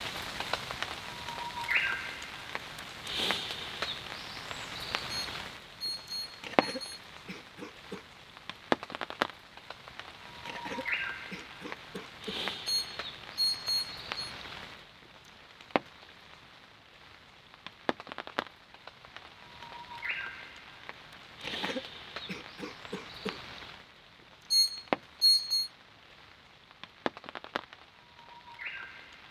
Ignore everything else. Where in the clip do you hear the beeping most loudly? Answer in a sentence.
The loudest moment of the beeping is at 25 seconds.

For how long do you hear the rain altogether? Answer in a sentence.
The rain can be heard for 29 seconds in total.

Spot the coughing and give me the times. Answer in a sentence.
You can hear the coughing from 6.4 to 8.1 s, from 10.4 to 12.4 s and from 21.4 to 23.4 s.